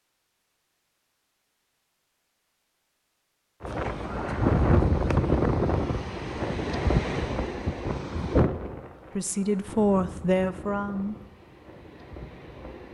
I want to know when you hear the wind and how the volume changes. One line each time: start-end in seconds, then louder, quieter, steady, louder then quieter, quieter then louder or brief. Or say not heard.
3.6-12.8 quieter.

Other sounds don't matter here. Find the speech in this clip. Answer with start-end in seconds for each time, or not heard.
9.2-11.2.